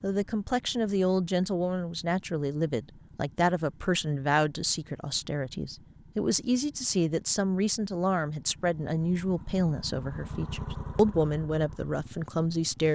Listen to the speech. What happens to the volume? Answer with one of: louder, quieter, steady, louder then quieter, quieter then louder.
steady.